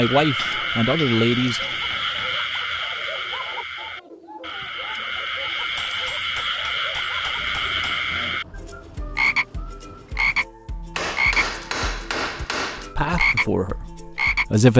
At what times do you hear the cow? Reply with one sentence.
The cow can't be heard in this clip.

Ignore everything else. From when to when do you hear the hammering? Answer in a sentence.
You can hear the hammering from 0.3 to 2.4 s, from 5.6 to 8.0 s and from 10.9 to 12.9 s.